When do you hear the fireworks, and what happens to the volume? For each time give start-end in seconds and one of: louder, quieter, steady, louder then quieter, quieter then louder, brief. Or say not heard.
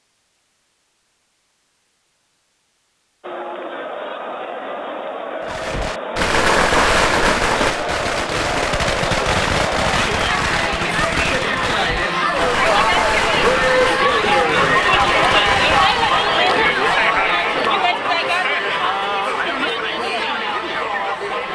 5.5-16.4 quieter.